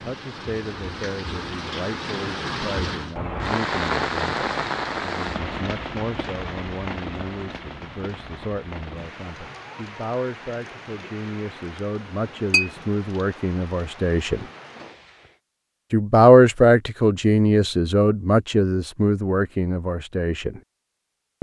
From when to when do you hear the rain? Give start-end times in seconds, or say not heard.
0.0-15.4.